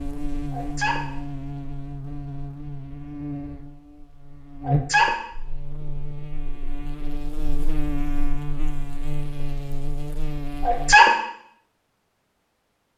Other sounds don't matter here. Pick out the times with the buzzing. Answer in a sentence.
The buzzing can be heard from 0.0 to 10.9 s.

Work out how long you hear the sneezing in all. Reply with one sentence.
You can hear the sneezing for 2 seconds altogether.